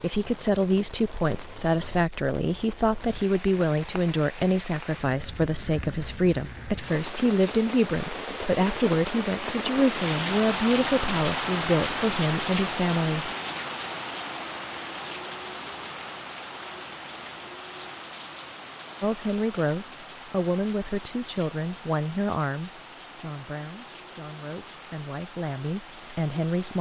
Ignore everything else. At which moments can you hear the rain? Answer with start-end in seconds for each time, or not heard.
0.0-26.7.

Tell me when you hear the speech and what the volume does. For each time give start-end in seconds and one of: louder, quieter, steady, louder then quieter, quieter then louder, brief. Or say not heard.
0.0-13.3 steady
19.0-26.7 quieter then louder.